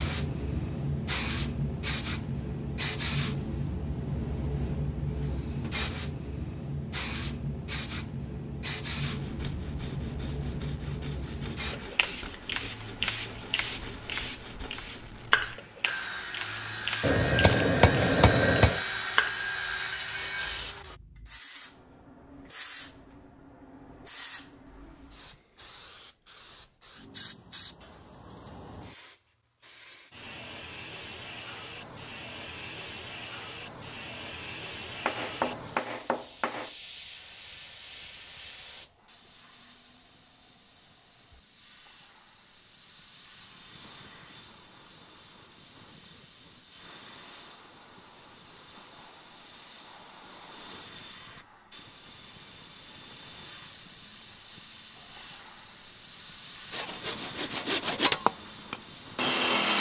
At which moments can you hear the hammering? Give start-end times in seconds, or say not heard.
17.0-18.8, 35.0-36.7.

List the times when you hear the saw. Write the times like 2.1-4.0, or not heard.
9.0-21.0, 56.7-59.7.